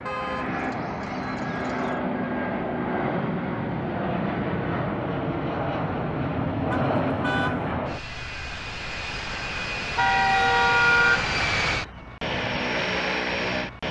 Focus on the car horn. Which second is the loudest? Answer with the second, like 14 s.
11 s.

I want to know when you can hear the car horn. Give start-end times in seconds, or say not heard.
0.1-1.9, 6.7-7.7, 9.9-11.2.